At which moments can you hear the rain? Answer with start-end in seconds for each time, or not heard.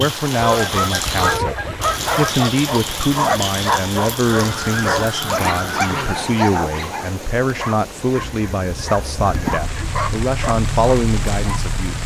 0.0-12.0.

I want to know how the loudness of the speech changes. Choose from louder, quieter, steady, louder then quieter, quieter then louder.
steady.